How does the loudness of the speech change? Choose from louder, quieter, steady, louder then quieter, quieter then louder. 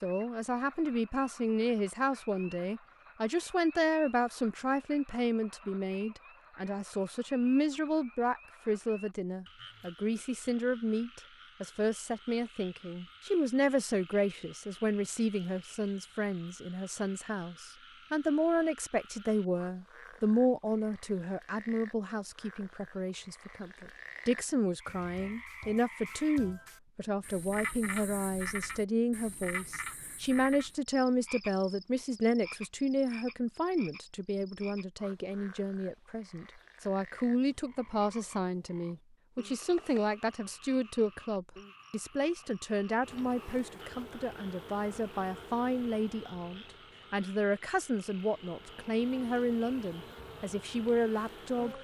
steady.